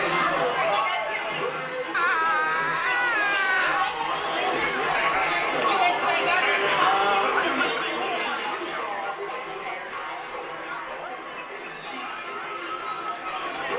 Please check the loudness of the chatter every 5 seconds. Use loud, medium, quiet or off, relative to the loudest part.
loud, loud, medium.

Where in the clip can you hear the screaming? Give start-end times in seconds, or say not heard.
1.9-3.9.